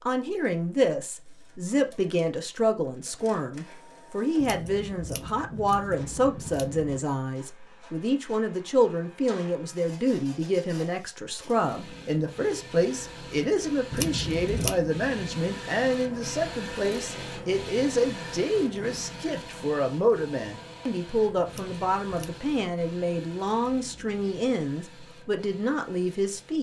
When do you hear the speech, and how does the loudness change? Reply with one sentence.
You can hear the speech from 0.0 to 26.5 s, at a steady volume.